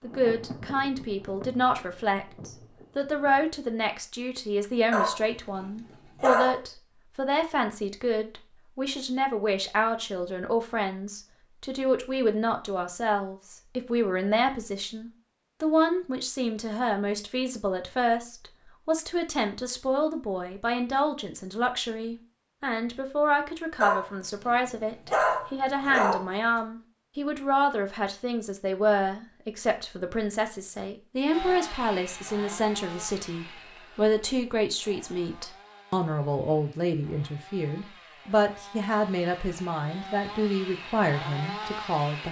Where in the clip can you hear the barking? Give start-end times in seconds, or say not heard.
4.9-6.6, 23.8-26.2.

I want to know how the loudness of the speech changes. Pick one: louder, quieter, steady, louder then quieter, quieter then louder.
steady.